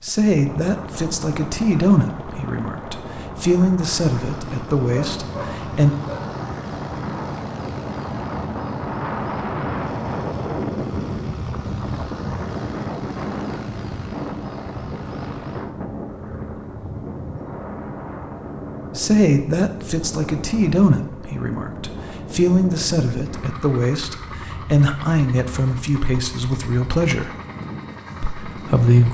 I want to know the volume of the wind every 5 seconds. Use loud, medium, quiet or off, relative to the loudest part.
medium, loud, loud, medium, medium, medium.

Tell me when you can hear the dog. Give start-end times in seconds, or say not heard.
4.9-6.4.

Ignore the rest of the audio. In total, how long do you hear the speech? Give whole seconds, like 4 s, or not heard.
15 s.